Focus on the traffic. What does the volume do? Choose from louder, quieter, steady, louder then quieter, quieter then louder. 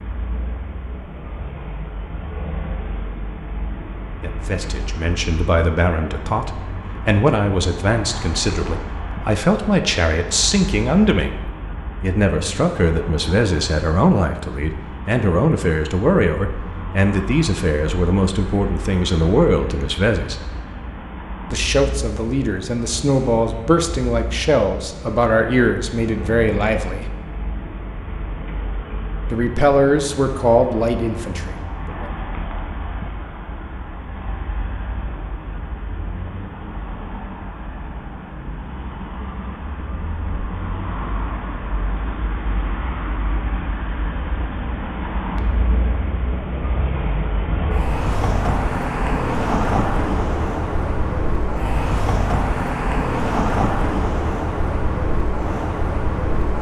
louder.